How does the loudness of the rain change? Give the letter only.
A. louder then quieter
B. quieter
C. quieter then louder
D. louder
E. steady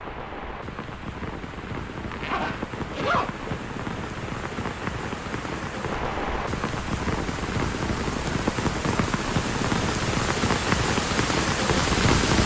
D.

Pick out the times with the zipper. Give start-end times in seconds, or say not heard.
2.1-3.6.